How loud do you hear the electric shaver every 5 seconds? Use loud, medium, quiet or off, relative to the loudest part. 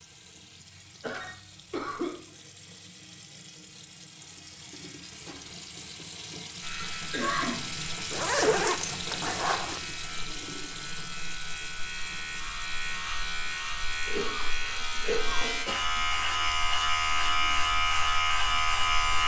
off, quiet, medium, loud.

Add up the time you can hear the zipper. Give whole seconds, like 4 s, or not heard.
2 s.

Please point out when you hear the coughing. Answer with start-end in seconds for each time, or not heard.
1.0-2.1, 7.0-7.7, 14.1-15.8.